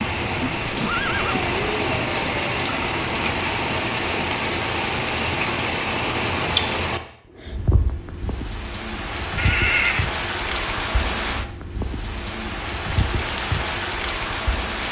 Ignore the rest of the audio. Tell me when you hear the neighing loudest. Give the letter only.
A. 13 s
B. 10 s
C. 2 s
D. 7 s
B.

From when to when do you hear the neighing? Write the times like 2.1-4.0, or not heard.
0.6-1.4, 9.3-10.1.